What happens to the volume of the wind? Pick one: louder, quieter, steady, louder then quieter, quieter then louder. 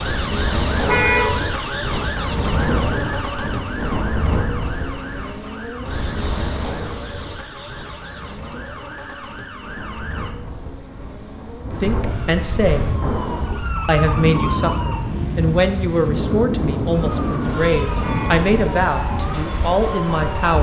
quieter then louder.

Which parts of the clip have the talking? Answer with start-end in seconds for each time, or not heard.
11.8-12.8, 13.8-20.5.